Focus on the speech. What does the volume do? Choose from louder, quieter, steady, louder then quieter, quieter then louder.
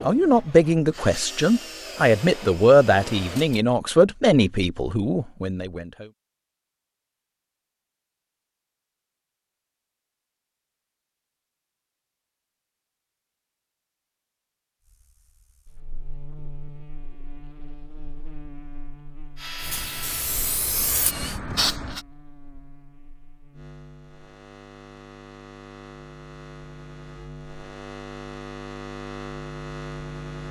quieter.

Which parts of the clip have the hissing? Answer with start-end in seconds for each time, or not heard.
19.6-22.1.